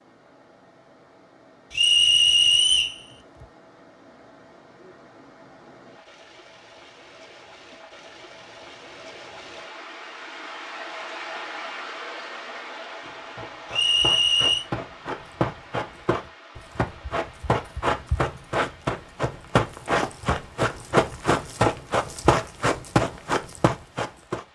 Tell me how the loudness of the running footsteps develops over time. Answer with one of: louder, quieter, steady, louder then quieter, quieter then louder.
louder.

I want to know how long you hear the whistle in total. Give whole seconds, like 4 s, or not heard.
2 s.